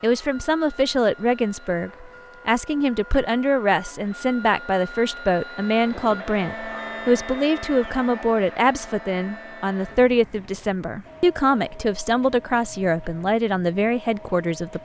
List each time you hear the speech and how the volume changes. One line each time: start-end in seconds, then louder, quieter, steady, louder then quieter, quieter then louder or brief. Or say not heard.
0.0-14.7 steady.